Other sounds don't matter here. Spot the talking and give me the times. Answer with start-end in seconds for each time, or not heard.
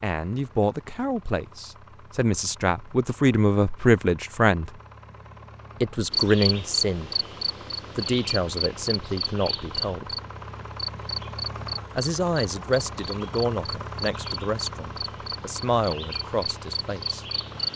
0.0-4.7, 5.8-7.1, 8.0-10.2, 11.9-17.2.